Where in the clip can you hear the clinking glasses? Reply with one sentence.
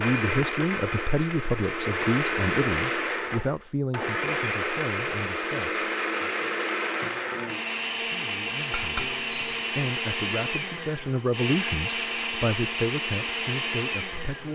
The clinking glasses can be heard from 8.7 to 9.7 s.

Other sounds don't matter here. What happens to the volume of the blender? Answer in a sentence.
The loudness of the blender stays about the same.